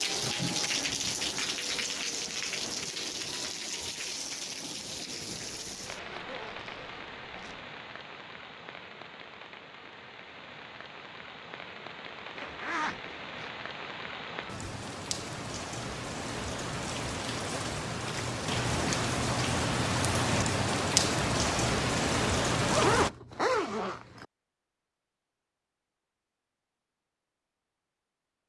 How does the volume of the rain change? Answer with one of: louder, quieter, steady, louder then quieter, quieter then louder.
quieter then louder.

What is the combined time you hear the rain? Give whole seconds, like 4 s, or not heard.
23 s.